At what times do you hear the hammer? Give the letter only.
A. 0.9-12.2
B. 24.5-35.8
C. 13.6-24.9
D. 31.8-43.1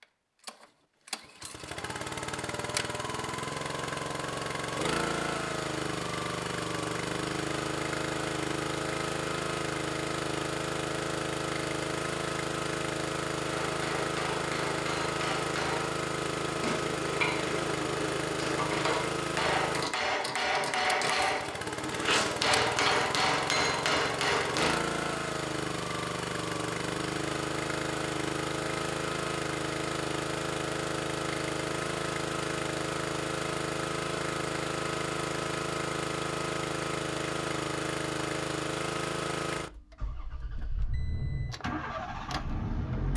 C.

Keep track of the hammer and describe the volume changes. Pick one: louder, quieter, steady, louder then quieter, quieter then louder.
louder.